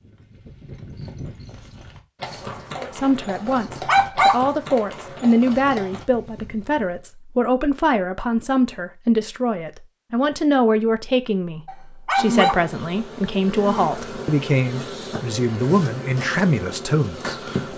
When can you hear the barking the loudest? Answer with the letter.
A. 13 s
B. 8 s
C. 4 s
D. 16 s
C.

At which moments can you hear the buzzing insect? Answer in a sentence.
The buzzing insect can be heard from 12.2 to 17.7 s.